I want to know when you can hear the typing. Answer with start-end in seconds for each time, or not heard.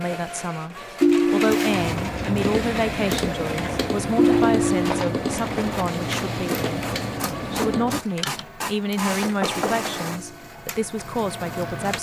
1.6-8.4.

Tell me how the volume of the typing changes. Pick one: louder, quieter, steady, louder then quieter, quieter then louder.
steady.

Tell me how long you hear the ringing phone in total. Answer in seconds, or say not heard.
3 s.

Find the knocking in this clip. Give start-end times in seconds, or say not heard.
9.2-9.9.